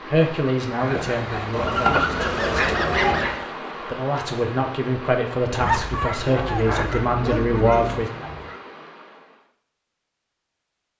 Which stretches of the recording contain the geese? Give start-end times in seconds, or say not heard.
1.5-3.3, 6.2-8.6.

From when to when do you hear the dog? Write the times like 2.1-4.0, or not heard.
0.8-3.5, 5.6-8.1.